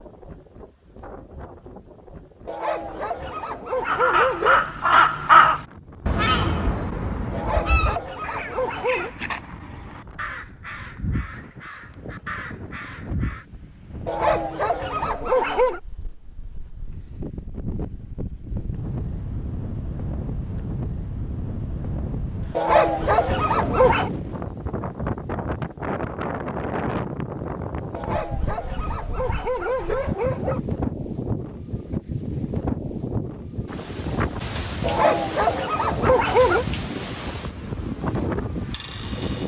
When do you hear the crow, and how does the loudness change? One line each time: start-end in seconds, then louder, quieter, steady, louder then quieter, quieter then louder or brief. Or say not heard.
3.9-13.4 quieter.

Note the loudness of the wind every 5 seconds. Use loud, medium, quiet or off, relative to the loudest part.
quiet, quiet, quiet, medium, loud, loud, loud, loud.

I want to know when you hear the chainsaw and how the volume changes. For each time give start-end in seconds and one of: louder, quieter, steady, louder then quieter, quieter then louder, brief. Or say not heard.
not heard.